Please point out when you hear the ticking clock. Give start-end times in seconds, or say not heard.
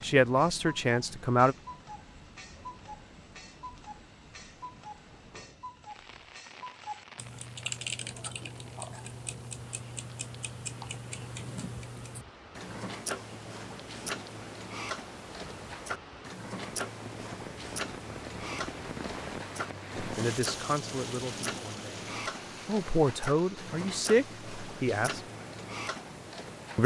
0.0-26.8.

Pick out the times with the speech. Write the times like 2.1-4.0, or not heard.
0.0-1.6, 19.9-21.9, 22.6-25.2.